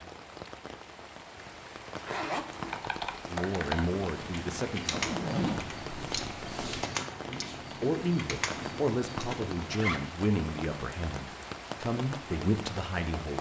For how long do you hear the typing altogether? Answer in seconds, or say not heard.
7 s.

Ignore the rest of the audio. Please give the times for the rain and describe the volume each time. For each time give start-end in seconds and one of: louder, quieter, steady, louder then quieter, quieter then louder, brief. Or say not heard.
0.0-13.3 steady.